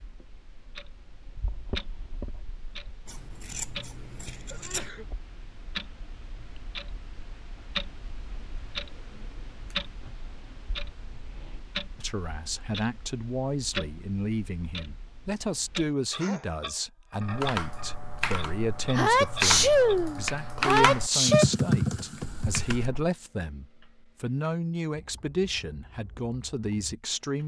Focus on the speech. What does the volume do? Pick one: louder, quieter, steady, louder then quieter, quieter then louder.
steady.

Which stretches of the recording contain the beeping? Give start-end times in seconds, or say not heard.
not heard.